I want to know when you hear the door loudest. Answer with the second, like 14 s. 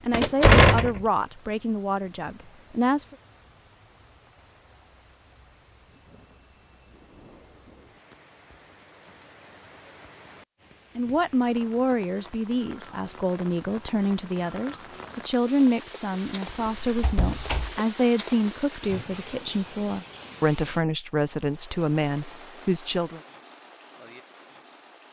1 s.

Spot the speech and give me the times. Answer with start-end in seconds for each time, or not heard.
0.1-3.1, 10.9-23.2.